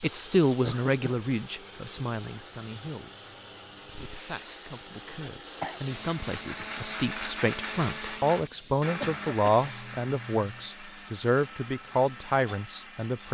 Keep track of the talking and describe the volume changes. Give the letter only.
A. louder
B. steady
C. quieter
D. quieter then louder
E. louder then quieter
D.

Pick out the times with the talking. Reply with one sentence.
You can hear the talking from 0.0 to 13.2 s.